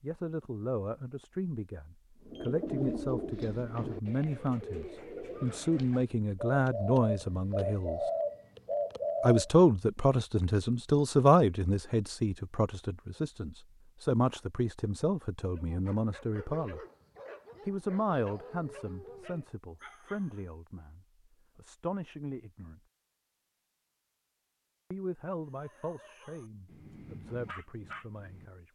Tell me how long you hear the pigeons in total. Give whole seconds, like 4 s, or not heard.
7 s.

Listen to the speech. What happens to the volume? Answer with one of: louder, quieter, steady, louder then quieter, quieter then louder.
louder then quieter.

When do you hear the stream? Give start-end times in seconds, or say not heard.
not heard.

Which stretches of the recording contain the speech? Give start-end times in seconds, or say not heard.
0.0-8.0, 9.2-16.8, 17.6-22.8, 24.9-28.7.